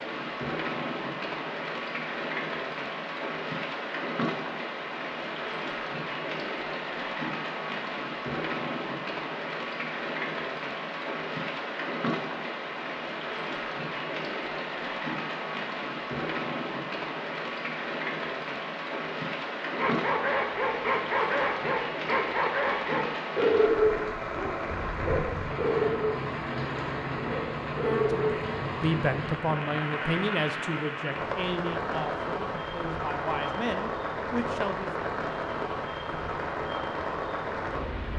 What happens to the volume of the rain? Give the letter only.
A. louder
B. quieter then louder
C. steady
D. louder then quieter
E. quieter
C.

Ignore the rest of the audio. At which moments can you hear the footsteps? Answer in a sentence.
You can't hear the footsteps here.